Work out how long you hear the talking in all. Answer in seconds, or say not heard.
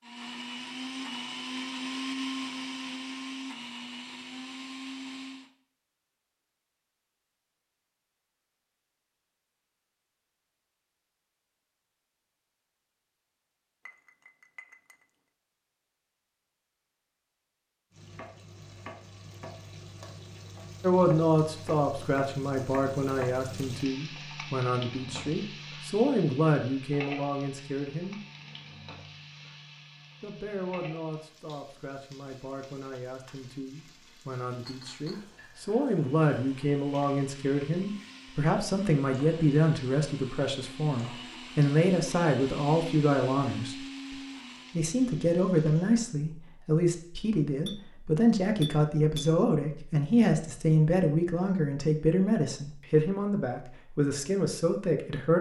32 s.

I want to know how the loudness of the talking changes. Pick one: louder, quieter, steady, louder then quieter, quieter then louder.
quieter then louder.